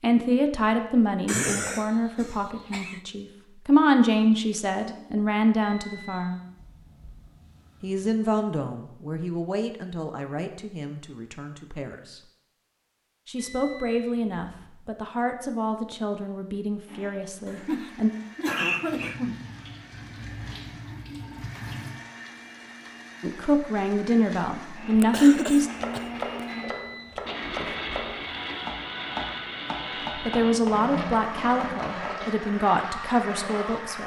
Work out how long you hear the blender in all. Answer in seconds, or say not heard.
17 s.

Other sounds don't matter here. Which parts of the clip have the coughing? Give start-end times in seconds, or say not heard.
1.2-3.0, 17.4-19.4, 24.9-26.6.